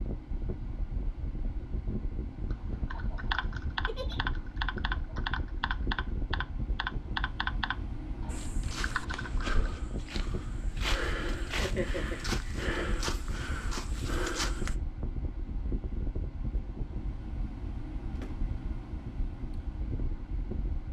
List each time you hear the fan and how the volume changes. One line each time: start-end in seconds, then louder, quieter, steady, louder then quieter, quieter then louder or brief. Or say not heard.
0.0-20.8 steady.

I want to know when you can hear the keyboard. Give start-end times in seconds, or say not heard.
2.5-9.5.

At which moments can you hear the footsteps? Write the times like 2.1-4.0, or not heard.
8.2-14.8.